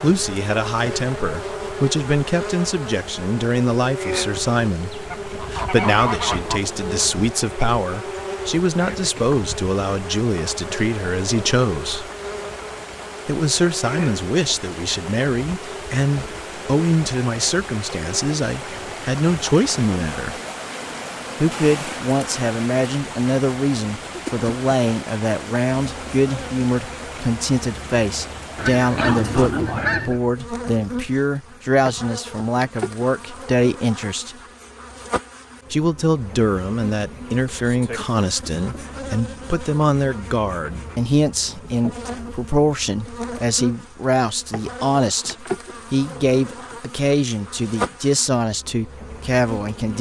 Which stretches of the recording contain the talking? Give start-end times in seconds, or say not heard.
0.0-12.1, 13.2-20.4, 21.4-34.4, 35.7-49.9.